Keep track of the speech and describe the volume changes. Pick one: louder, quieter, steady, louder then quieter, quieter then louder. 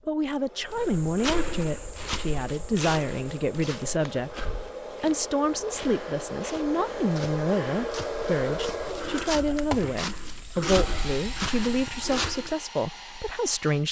steady.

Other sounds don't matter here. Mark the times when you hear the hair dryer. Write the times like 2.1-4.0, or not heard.
0.2-13.8.